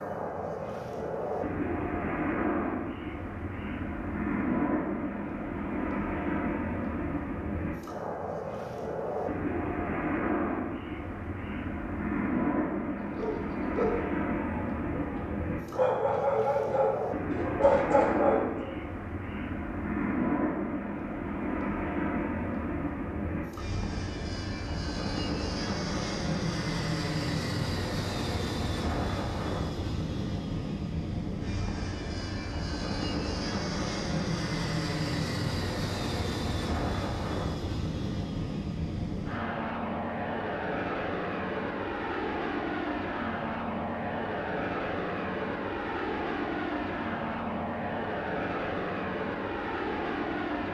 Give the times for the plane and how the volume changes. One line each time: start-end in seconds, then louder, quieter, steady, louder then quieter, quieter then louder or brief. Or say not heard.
0.0-50.6 steady.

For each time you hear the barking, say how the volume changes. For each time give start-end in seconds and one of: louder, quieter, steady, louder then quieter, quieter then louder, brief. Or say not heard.
13.1-18.7 quieter then louder.